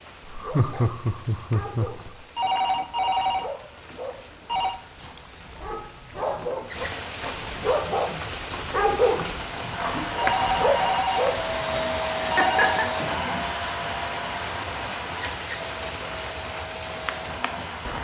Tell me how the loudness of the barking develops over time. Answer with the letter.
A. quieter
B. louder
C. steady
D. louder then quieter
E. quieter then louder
B.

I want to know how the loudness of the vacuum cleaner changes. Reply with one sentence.
The loudness of the vacuum cleaner goes down.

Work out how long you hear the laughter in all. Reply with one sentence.
You can hear the laughter for 3 seconds altogether.